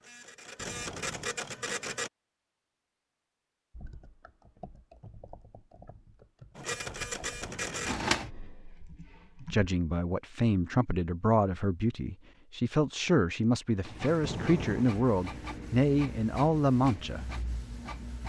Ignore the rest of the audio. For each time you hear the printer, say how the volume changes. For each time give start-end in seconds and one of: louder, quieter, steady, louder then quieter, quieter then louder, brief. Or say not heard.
0.0-2.1 brief
6.5-8.3 brief
13.8-18.2 steady.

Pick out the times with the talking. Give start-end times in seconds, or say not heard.
9.4-17.2.